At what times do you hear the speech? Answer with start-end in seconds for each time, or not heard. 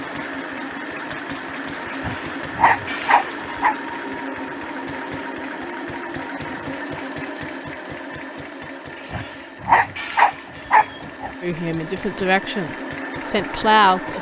11.4-14.1.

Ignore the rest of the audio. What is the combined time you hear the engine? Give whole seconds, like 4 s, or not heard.
14 s.